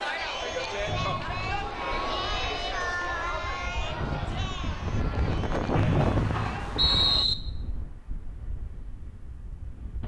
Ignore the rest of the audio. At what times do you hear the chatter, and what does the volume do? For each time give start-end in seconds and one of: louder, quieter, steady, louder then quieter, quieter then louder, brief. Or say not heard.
0.0-7.2 quieter.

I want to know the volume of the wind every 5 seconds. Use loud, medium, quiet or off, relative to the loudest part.
medium, loud.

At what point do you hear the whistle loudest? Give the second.
7 s.